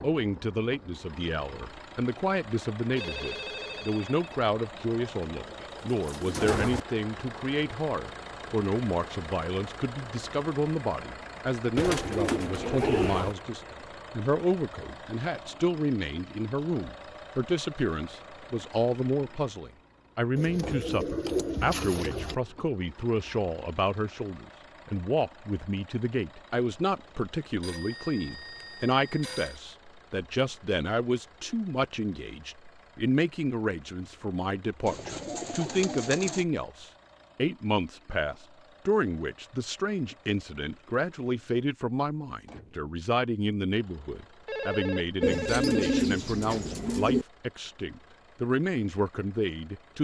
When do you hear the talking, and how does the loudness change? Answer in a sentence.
You can hear the talking from 0.0 to 49.9 s, at a steady volume.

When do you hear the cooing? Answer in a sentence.
The cooing can be heard from 5.5 to 6.8 s, from 11.8 to 13.3 s, from 20.4 to 22.4 s, from 34.9 to 36.5 s and from 45.2 to 47.2 s.